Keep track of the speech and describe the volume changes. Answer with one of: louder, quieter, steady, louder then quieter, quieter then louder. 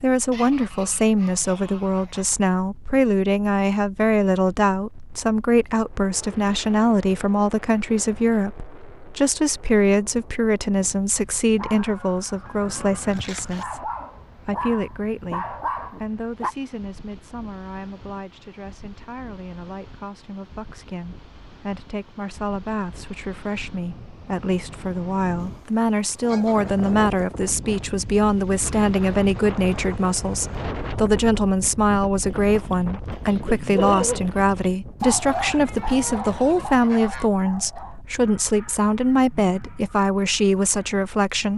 quieter then louder.